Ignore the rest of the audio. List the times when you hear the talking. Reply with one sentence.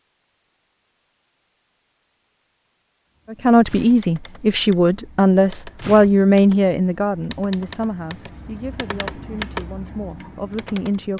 You can hear the talking from 3.3 to 11.1 s.